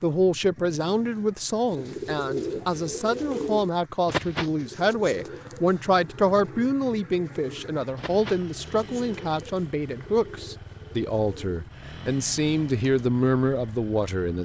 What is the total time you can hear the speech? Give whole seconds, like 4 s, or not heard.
14 s.